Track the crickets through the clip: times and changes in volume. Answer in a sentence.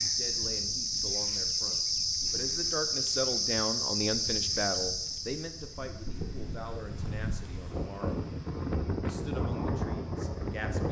The crickets can be heard from 0.0 to 10.8 s, getting quieter.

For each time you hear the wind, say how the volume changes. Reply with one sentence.
You can hear the wind from 0.0 to 10.8 s, getting louder.